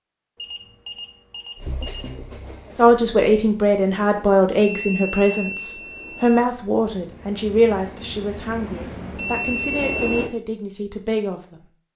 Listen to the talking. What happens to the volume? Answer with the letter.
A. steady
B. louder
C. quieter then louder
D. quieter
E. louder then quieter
D.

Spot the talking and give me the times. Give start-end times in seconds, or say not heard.
2.8-11.9.